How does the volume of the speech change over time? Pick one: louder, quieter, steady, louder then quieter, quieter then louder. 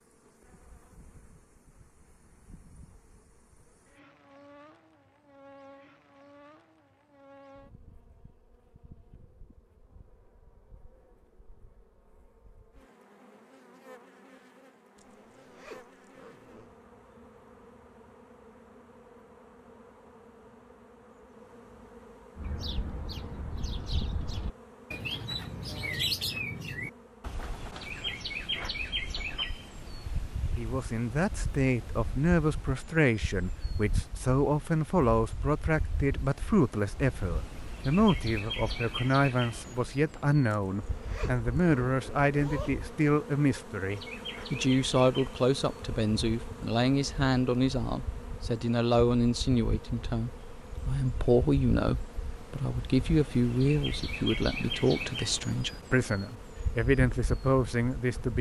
steady.